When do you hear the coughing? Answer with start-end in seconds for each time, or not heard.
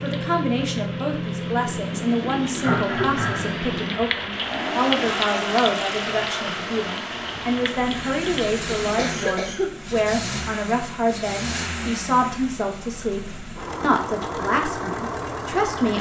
2.6-3.5, 8.9-9.9.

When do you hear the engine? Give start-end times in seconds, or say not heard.
0.0-15.9.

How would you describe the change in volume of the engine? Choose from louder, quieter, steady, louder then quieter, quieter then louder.
steady.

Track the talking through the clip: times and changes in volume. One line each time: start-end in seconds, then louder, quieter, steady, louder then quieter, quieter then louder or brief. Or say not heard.
0.0-15.9 steady.